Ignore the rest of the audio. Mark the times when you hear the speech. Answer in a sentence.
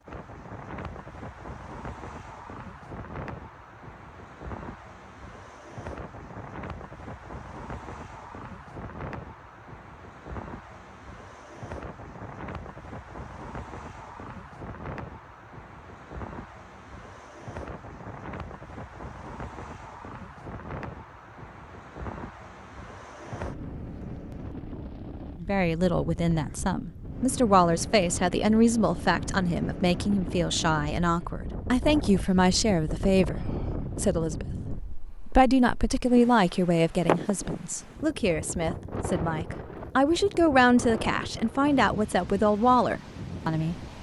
The speech can be heard from 25.4 to 43.9 s.